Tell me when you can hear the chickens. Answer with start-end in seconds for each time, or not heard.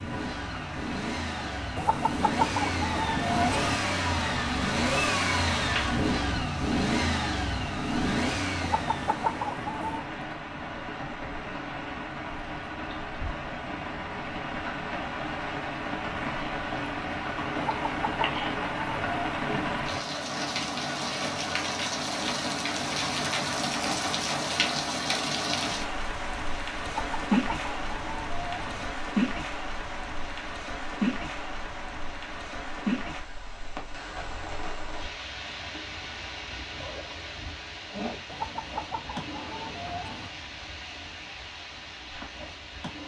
1.8-3.8, 8.6-10.1, 17.6-19.4, 26.9-28.9, 38.2-40.3.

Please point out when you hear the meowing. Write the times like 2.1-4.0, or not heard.
not heard.